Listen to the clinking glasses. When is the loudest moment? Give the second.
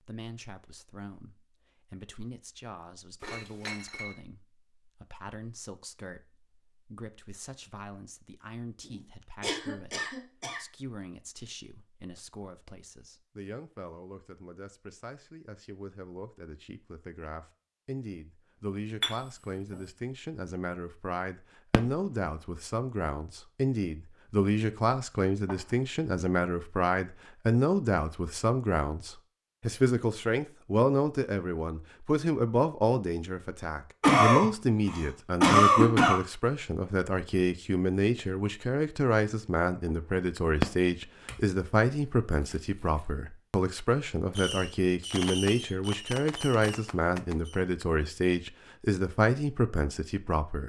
19 s.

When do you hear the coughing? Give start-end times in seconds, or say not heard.
9.4-10.6, 34.0-36.1.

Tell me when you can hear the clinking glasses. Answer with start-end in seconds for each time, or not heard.
3.2-4.2, 19.0-19.8, 41.2-43.0.